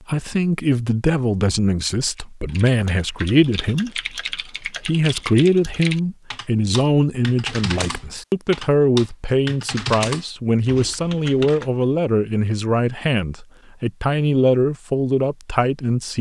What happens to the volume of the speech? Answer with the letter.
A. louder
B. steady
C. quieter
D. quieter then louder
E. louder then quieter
B.